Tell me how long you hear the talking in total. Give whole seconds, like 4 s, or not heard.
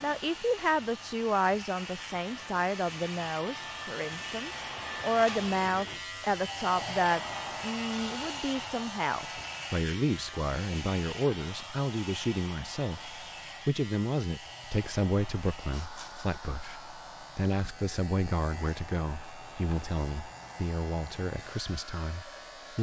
23 s.